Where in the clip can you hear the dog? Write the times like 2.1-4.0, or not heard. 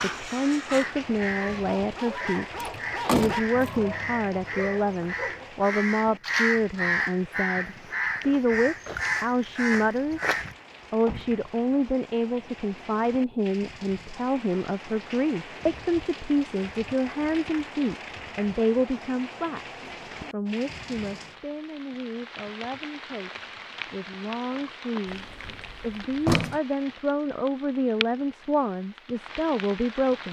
0.0-5.6.